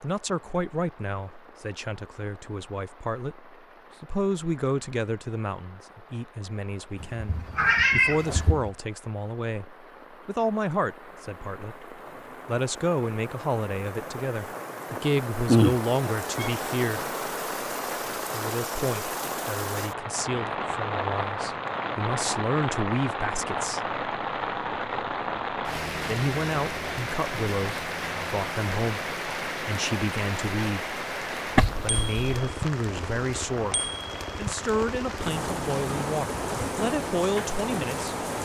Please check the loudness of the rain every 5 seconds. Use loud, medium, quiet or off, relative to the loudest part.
quiet, quiet, medium, loud, loud, loud, loud, loud.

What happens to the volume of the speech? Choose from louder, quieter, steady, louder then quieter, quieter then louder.
steady.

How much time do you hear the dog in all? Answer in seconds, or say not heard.
not heard.